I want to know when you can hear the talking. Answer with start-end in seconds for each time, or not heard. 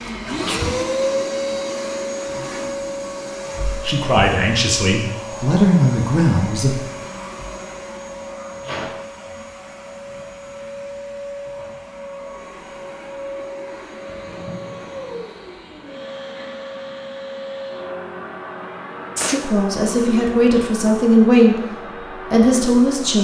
3.6-6.8, 19.4-23.1.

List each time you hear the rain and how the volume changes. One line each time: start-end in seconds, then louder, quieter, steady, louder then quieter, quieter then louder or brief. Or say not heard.
not heard.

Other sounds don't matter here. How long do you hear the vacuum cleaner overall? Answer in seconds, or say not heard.
23 s.